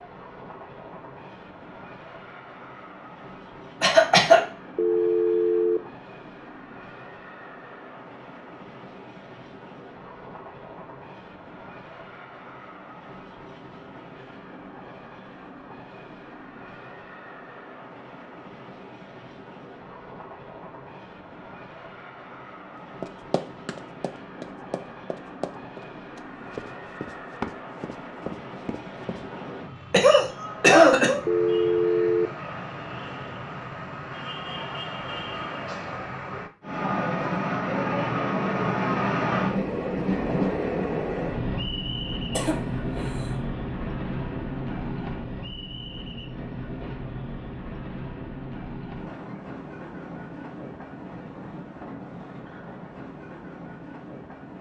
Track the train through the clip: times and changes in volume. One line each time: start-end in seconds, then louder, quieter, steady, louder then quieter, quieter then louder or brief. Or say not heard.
0.0-54.5 louder then quieter.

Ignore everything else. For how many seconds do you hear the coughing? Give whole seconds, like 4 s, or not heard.
3 s.